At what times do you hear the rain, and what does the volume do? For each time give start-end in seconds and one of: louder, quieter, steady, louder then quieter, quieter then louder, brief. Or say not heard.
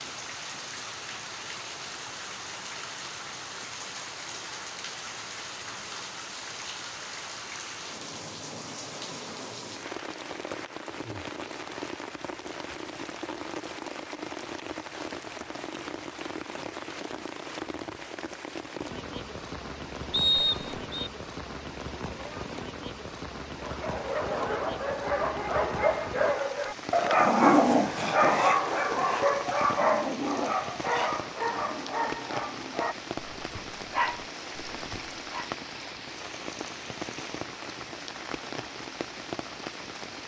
0.0-40.2 steady.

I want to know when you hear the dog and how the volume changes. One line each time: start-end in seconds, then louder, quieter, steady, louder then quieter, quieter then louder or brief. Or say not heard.
23.6-35.5 louder then quieter.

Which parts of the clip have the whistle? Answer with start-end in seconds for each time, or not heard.
20.1-21.1.